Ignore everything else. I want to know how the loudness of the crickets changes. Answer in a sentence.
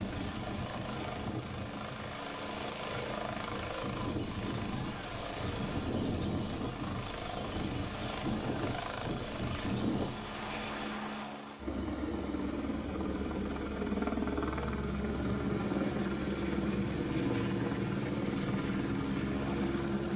The loudness of the crickets goes up.